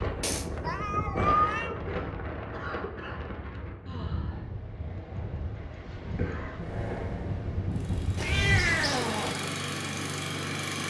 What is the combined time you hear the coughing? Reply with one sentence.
The coughing can be heard for 3 seconds in total.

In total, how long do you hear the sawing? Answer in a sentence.
You can't hear the sawing here.